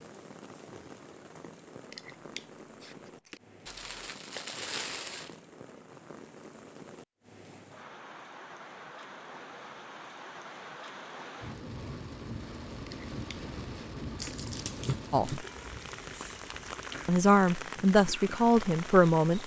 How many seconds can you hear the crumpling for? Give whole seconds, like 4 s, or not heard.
3 s.